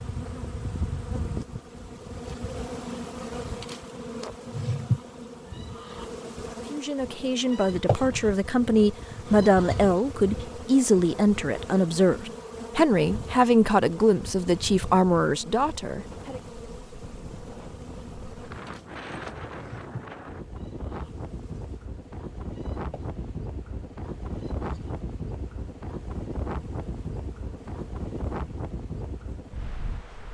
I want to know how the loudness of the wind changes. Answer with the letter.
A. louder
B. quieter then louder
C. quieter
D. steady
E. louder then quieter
A.